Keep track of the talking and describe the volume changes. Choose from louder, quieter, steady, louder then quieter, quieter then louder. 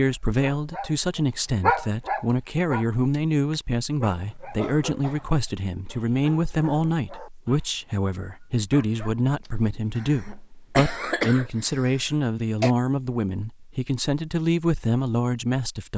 steady.